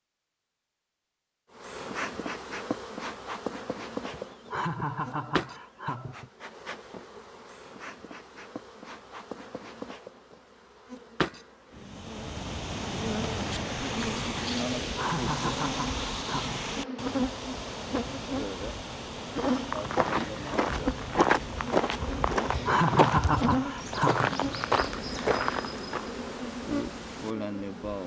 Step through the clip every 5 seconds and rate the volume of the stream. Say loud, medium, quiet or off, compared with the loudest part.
off, off, loud, loud, medium, medium.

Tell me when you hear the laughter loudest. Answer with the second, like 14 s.
23 s.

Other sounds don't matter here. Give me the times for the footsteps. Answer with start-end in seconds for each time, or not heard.
19.3-26.1.